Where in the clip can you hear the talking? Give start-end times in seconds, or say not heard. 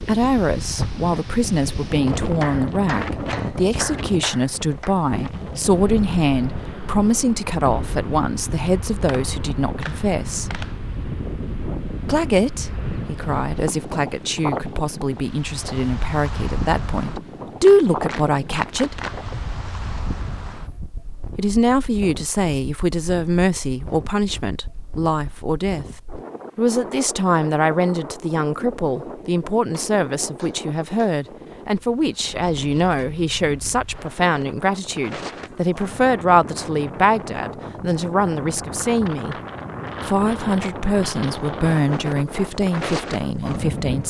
0.0-10.5, 12.1-18.9, 21.4-25.9, 26.6-39.4, 40.0-44.0.